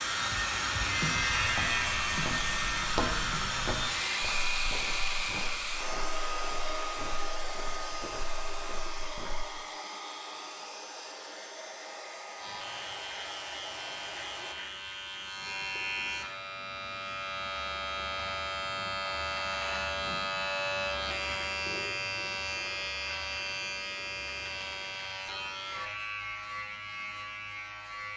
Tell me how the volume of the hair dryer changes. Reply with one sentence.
The loudness of the hair dryer goes down.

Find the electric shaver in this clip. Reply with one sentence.
The electric shaver can be heard from 0.0 to 5.4 s and from 12.3 to 28.1 s.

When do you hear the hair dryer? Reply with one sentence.
The hair dryer can be heard from 0.0 to 14.6 s.